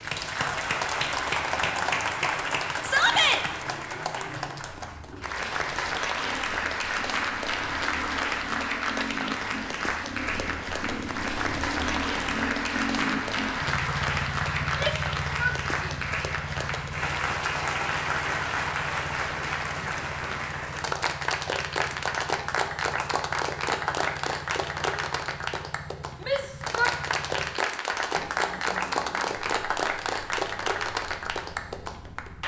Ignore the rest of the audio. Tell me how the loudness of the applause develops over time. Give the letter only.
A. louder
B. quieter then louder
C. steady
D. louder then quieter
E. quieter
C.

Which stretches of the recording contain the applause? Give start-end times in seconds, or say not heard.
0.0-32.4.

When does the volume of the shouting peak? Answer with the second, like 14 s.
3 s.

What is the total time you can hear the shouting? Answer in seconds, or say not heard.
3 s.